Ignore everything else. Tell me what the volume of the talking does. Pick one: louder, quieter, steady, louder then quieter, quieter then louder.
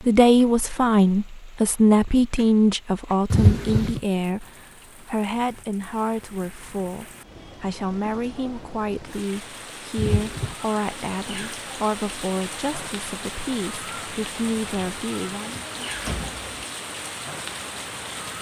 quieter.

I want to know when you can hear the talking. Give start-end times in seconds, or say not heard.
0.0-15.6.